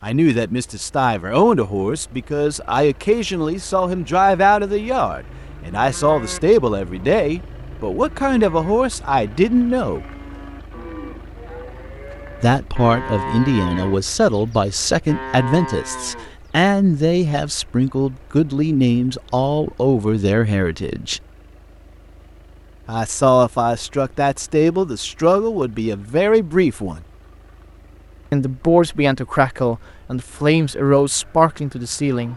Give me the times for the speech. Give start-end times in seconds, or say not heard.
0.0-10.1, 12.4-21.2, 22.9-27.0, 28.3-32.3.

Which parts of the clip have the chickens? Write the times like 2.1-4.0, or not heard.
not heard.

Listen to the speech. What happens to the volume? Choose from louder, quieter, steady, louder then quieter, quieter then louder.
steady.